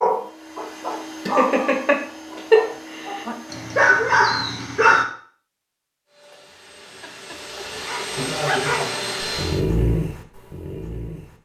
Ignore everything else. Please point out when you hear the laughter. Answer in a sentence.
The laughter can be heard from 1.2 to 2.6 s and from 8.2 to 8.9 s.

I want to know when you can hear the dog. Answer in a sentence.
You can hear the dog from 0.0 to 5.0 s and from 6.8 to 11.3 s.